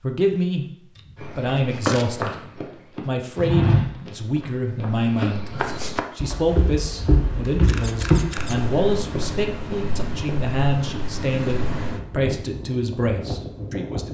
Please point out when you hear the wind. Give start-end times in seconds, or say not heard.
6.6-14.0.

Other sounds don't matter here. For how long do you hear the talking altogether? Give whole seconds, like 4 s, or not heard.
13 s.